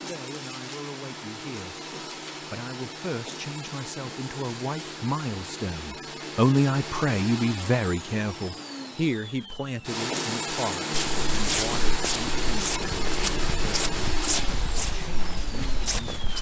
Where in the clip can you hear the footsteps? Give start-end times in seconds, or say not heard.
10.9-16.3.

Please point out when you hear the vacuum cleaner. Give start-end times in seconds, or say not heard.
0.0-16.3.